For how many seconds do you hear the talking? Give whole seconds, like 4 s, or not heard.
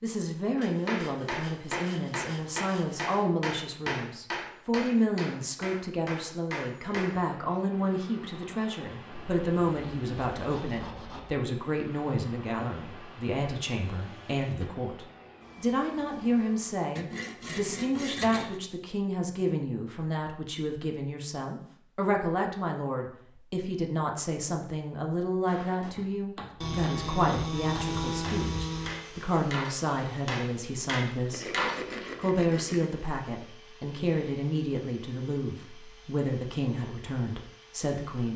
38 s.